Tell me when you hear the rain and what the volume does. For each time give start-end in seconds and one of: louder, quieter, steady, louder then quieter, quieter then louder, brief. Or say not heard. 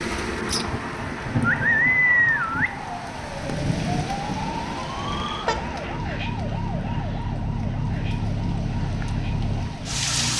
0.0-10.3 quieter.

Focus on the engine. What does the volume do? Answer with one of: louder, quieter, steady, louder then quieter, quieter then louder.
quieter then louder.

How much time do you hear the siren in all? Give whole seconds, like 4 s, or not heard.
8 s.